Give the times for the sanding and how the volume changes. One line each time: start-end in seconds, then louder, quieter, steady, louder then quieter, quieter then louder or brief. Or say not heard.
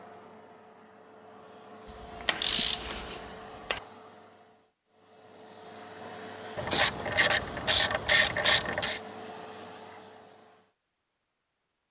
not heard.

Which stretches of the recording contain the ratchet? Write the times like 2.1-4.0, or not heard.
2.2-3.8, 6.5-9.0.